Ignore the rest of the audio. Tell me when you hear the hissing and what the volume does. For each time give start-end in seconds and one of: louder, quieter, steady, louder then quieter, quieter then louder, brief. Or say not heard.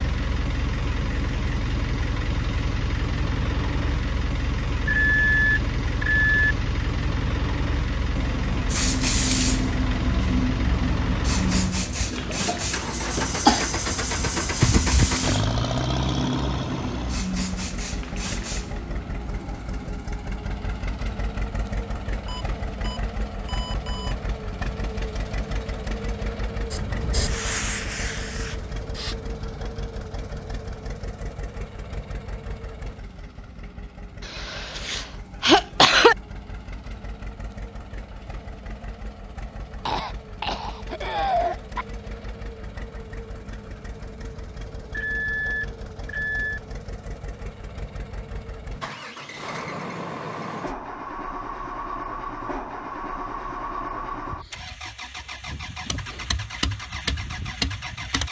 8.2-19.9 quieter
26.7-29.1 brief.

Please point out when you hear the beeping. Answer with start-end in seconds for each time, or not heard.
4.8-6.5, 22.2-24.1, 44.9-46.6.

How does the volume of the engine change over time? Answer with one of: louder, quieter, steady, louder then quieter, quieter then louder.
quieter then louder.